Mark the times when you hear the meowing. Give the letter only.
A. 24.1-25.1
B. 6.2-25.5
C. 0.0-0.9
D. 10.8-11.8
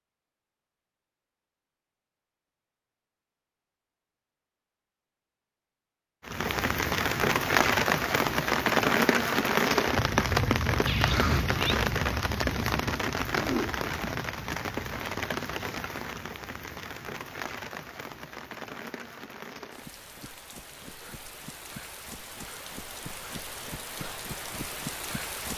D.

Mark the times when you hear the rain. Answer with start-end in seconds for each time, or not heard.
6.2-25.5.